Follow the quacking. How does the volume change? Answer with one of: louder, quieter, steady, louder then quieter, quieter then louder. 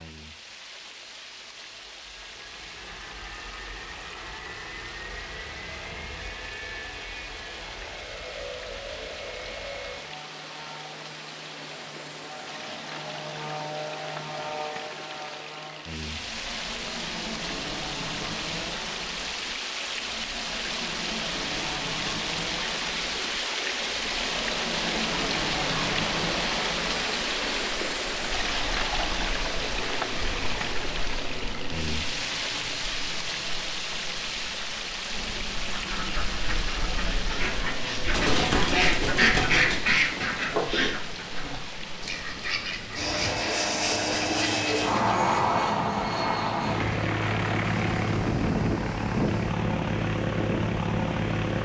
louder then quieter.